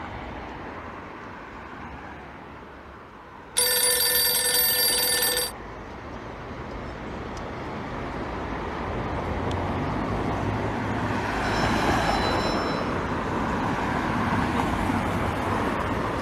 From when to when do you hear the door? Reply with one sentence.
The door can't be heard in this clip.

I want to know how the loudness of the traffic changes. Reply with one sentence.
The volume of the traffic goes up.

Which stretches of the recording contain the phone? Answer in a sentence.
The phone can be heard from 3.5 to 5.5 s and from 11.4 to 12.9 s.